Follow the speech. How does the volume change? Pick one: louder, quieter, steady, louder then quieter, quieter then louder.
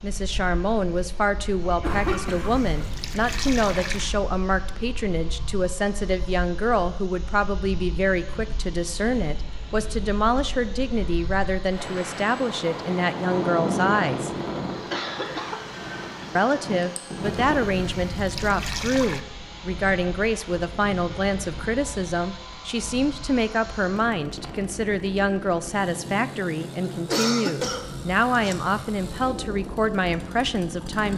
steady.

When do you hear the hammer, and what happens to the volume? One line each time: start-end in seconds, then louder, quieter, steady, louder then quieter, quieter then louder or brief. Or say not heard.
not heard.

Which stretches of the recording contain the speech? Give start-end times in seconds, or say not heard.
0.0-14.3, 16.4-31.1.